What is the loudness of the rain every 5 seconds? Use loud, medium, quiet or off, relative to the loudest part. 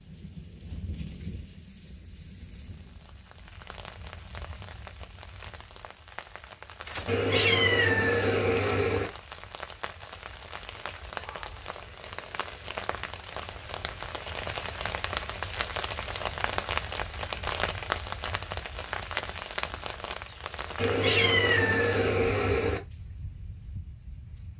quiet, medium, medium, loud, medium.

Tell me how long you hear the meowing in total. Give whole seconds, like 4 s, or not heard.
4 s.